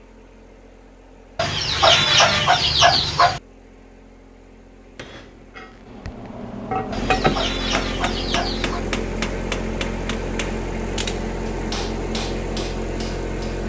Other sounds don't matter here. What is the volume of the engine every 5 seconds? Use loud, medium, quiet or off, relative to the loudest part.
quiet, loud, loud.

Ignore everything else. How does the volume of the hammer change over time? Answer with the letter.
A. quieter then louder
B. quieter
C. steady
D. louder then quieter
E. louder
D.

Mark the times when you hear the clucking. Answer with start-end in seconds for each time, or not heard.
1.4-3.4, 6.9-8.8.